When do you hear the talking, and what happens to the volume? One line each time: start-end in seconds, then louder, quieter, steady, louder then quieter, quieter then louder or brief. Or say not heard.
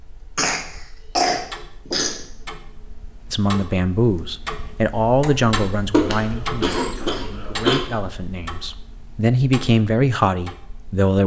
3.3-11.2 quieter then louder.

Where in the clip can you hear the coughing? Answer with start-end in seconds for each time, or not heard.
0.3-2.2, 5.9-7.8.